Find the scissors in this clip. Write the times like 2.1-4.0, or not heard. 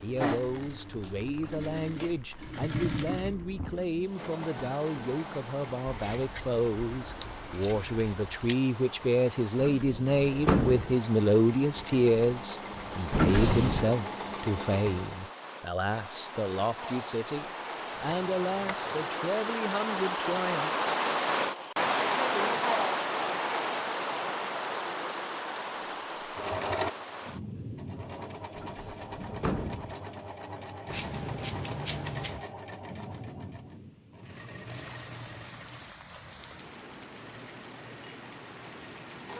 5.8-8.6, 17.9-19.1, 30.9-32.4.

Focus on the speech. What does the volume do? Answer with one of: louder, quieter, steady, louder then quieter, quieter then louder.
louder then quieter.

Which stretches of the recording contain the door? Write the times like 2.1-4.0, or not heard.
9.6-10.9, 13.1-13.9, 28.6-29.9.